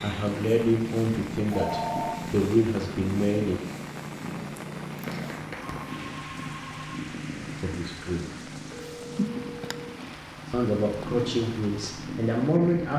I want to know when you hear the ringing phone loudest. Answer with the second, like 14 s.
2 s.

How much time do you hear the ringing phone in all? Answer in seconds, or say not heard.
4 s.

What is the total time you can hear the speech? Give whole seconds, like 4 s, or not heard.
7 s.